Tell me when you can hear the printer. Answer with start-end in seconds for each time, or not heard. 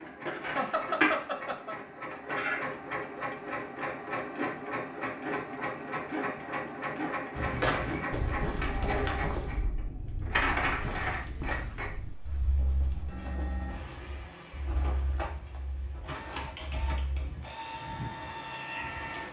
0.0-19.2.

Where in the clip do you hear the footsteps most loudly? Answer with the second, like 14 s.
8 s.